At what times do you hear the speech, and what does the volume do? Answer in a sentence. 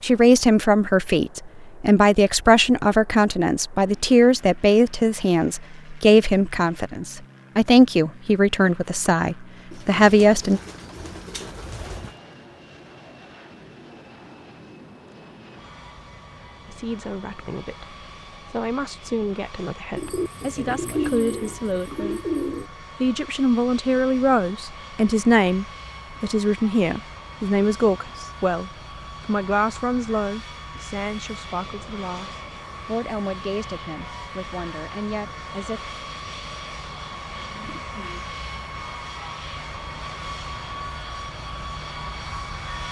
You can hear the speech from 0.0 to 10.6 s, at a steady volume; from 16.6 to 22.2 s, getting louder; and from 23.0 to 36.0 s, getting quieter.